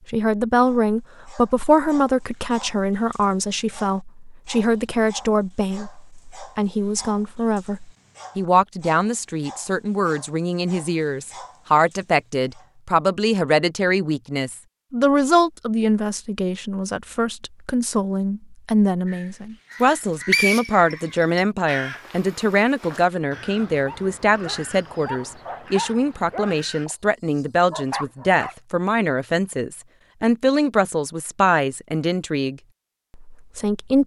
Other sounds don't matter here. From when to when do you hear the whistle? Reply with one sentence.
The whistle can be heard from 19.8 to 21.4 s.